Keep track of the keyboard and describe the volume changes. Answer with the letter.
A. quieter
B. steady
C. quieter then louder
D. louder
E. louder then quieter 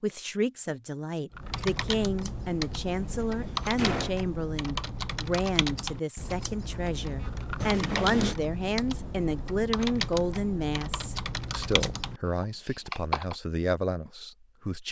B.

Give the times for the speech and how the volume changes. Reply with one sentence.
The speech can be heard from 0.0 to 14.8 s, at a steady volume.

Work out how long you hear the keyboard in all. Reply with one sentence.
The keyboard can be heard for 12 seconds in total.